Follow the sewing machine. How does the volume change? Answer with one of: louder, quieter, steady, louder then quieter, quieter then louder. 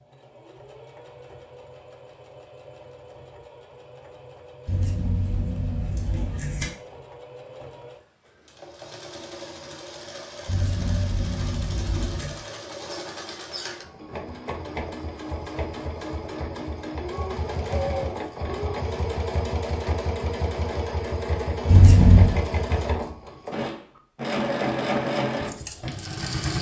louder.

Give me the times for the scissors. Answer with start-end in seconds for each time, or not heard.
4.7-6.7, 10.4-12.3, 21.6-22.4.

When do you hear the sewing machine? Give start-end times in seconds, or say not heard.
0.0-26.5.